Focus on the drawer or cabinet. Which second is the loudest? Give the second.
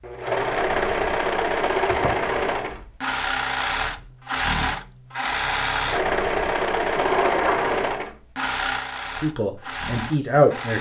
7 s.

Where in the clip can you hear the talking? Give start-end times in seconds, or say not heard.
9.2-10.7.